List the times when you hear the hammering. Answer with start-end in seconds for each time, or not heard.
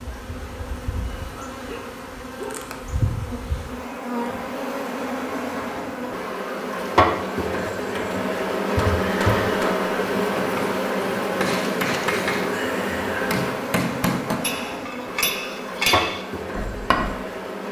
8.8-17.1.